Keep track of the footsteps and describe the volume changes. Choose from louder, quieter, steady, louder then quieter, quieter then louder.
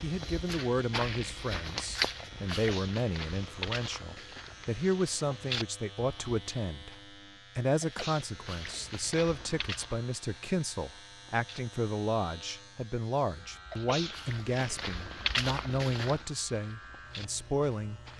quieter then louder.